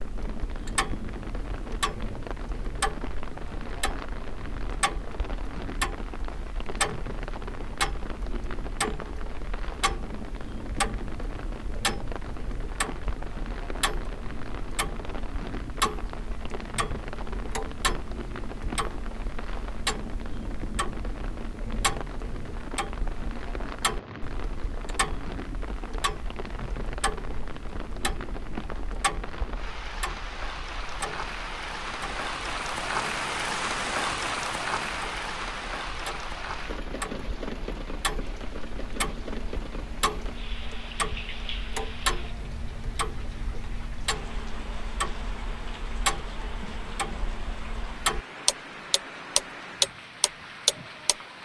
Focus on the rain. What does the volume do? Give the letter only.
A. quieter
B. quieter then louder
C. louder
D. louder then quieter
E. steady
D.